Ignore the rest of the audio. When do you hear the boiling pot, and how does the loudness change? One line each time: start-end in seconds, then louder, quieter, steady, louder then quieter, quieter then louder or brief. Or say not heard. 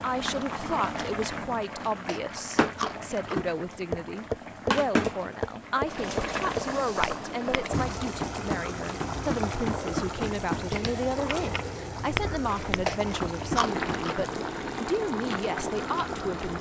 0.0-16.5 steady.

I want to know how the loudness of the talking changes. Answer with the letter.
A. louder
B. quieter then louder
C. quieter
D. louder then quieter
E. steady
E.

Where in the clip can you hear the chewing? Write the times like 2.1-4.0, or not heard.
1.7-3.4, 12.4-14.2.